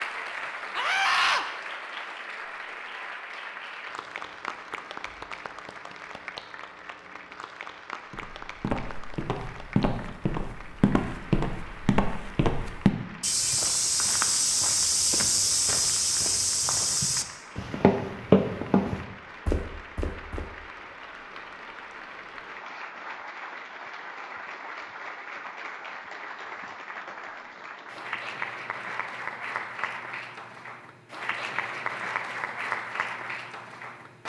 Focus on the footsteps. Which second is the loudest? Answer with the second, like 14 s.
18 s.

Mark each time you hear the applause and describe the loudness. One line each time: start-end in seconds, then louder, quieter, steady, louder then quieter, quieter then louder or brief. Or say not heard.
0.0-34.2 quieter then louder.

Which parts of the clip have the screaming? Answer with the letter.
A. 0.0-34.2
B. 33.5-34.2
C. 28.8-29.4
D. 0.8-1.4
D.